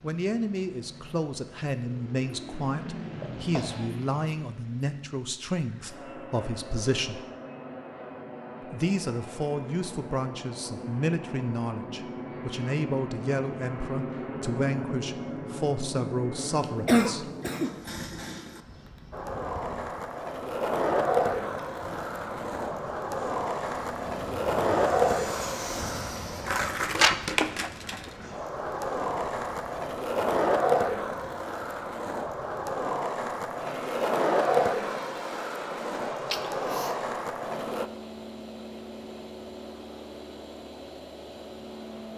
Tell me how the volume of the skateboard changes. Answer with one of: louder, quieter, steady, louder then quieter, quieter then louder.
steady.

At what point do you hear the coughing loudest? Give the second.
17 s.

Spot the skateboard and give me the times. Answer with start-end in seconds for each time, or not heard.
19.1-37.9.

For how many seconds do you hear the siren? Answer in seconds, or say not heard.
not heard.